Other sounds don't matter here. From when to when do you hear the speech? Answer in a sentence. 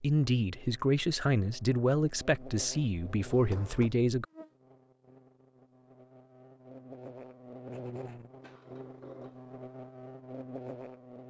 You can hear the speech from 0.0 to 4.2 s.